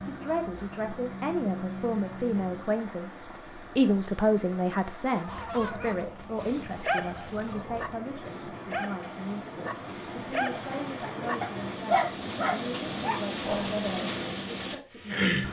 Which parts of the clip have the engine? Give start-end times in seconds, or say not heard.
0.0-2.8.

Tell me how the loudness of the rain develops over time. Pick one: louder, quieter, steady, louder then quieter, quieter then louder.
louder.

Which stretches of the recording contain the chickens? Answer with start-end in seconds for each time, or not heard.
not heard.